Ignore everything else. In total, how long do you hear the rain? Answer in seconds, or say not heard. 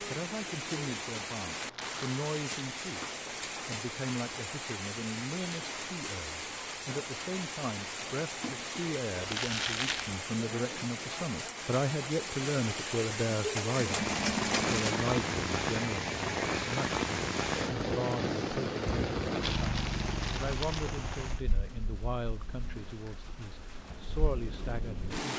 25 s.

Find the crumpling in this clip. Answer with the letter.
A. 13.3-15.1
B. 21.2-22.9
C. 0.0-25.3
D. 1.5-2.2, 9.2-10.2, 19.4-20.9
D.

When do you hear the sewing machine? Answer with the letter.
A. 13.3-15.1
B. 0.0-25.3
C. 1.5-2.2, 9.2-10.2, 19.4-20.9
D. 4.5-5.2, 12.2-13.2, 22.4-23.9
A.